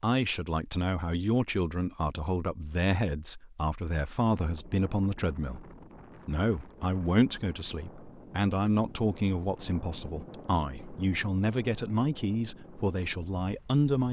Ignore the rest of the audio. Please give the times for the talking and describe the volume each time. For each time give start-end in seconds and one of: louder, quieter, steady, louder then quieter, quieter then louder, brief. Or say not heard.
0.0-14.0 steady.